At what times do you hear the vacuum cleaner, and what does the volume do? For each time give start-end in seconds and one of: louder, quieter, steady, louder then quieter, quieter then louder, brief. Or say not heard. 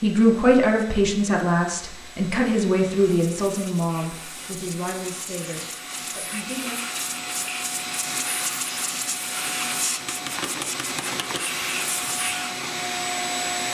0.0-13.6 louder.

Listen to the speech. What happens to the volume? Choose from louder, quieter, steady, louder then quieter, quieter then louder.
quieter.